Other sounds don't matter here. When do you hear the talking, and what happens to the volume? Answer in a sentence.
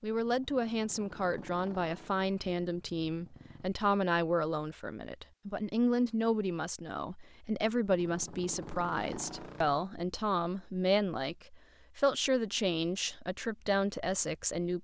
You can hear the talking from 0.0 to 14.7 s, at a steady volume.